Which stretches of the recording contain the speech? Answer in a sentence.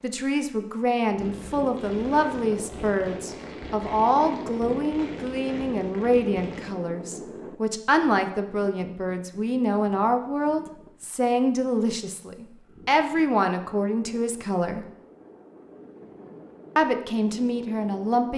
You can hear the speech from 0.0 to 14.8 s and from 16.8 to 18.3 s.